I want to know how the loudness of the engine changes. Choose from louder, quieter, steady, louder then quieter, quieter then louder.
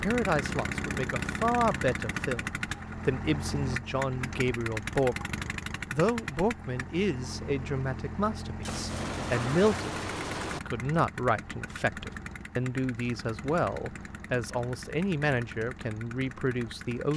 quieter.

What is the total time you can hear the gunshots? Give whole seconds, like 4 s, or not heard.
2 s.